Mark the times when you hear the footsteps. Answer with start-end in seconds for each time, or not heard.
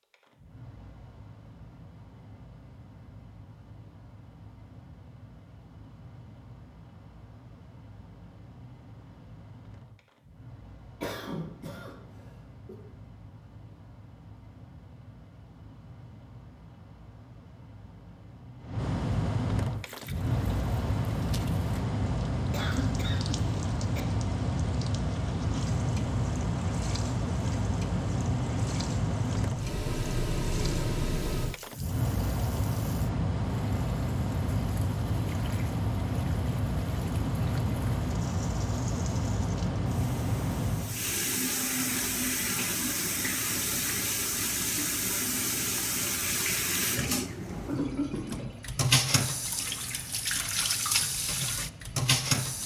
not heard.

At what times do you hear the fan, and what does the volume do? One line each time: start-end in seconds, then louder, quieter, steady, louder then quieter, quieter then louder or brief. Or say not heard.
0.0-52.6 louder then quieter.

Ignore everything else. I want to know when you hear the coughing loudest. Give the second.
48 s.